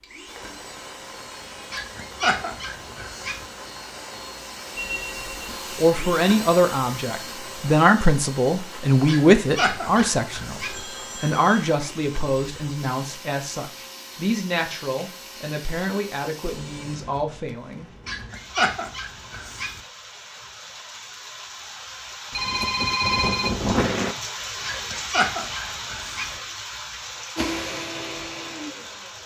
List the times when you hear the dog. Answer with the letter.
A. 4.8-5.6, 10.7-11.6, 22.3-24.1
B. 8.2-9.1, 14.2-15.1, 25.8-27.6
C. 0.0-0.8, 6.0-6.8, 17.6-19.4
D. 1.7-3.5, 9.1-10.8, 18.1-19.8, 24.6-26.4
D.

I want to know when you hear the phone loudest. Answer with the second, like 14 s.
23 s.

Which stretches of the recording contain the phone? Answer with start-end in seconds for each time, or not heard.
4.8-5.6, 10.7-11.6, 22.3-24.1.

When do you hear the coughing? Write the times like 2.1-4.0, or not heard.
not heard.